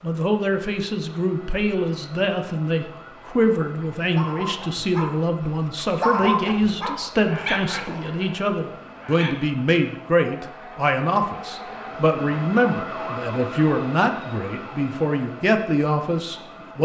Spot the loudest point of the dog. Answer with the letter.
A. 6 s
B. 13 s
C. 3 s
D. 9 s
A.